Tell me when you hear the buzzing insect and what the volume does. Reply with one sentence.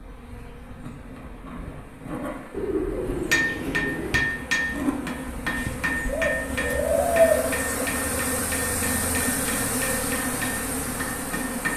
You can hear the buzzing insect from 0.0 to 11.7 s, getting louder.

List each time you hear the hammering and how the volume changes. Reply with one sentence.
You can hear the hammering from 3.3 to 11.7 s, getting quieter.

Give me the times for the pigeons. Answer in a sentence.
The pigeons can be heard from 2.5 to 4.2 s and from 6.0 to 8.0 s.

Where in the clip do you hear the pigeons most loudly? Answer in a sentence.
The volume of the pigeons peaks at 7 seconds.